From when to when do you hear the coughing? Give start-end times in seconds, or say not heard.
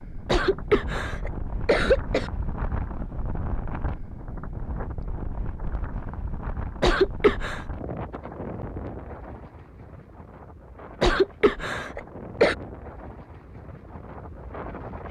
0.2-2.3, 6.8-7.7, 11.0-12.6.